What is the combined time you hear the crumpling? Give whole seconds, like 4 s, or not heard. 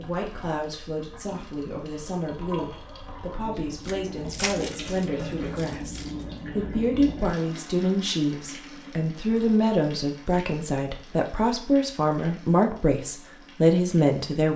2 s.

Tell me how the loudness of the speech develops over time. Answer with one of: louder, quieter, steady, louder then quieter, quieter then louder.
louder.